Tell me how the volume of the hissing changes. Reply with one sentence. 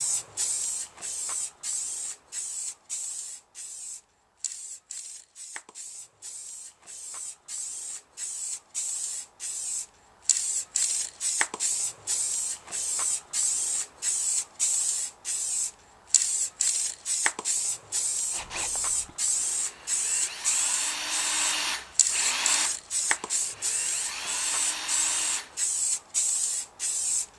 The volume of the hissing goes up.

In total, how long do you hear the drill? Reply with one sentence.
The drill can be heard for 7 seconds in total.